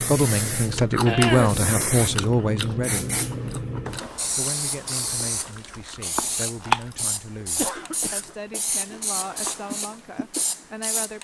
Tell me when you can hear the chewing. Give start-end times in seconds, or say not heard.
0.7-10.7.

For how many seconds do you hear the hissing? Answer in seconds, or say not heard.
11 s.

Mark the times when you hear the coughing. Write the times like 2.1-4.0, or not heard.
1.1-1.6, 7.4-8.2.